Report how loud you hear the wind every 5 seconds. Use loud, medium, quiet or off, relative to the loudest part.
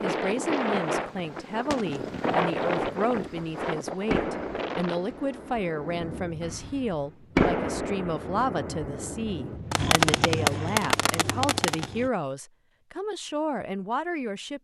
loud, quiet, off.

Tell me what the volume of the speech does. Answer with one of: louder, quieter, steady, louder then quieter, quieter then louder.
steady.